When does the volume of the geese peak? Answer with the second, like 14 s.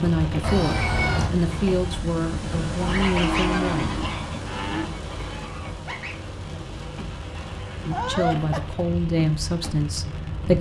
3 s.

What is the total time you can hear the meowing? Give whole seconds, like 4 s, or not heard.
2 s.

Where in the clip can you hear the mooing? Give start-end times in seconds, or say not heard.
3.1-4.8.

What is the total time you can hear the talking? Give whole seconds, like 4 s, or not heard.
7 s.